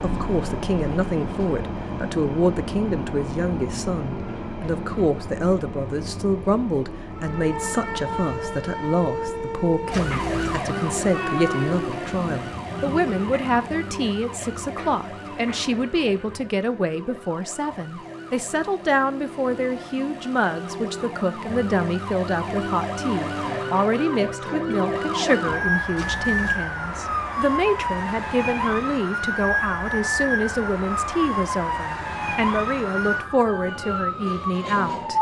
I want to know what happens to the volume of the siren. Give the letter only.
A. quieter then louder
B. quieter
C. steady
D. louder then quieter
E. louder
A.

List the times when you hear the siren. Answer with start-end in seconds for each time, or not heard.
7.1-35.1.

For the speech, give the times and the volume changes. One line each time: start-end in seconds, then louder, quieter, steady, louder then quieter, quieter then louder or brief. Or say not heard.
0.0-35.1 steady.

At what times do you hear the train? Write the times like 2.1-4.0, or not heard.
0.0-16.6.